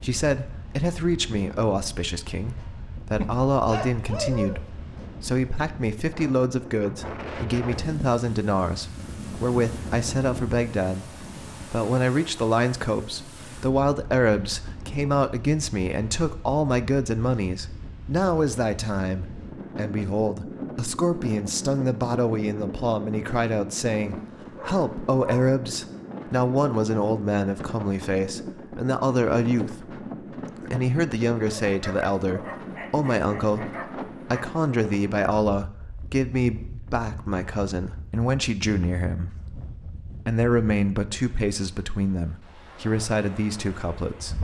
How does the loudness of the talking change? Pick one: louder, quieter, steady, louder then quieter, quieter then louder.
steady.